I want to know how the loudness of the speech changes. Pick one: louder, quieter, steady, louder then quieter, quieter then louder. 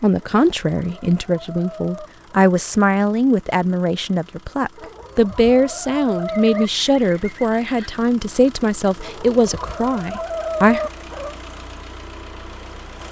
steady.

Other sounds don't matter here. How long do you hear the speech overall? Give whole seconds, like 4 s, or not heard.
11 s.